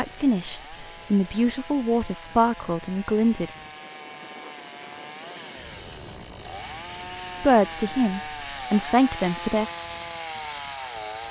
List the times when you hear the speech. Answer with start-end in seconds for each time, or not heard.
0.0-3.5, 7.4-9.7.